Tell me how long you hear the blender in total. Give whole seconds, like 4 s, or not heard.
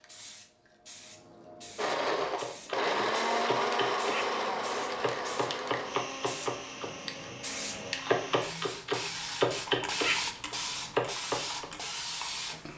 7 s.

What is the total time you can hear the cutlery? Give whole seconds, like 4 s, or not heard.
not heard.